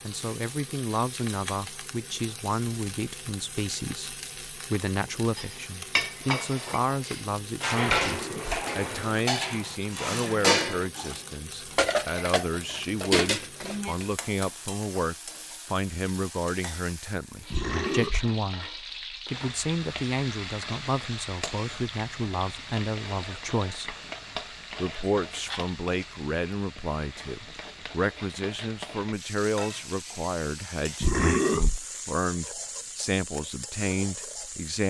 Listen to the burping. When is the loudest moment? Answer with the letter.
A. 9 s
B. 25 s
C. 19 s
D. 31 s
D.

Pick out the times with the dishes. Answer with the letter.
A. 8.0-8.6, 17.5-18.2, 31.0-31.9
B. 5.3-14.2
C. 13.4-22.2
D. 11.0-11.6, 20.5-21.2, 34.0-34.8
B.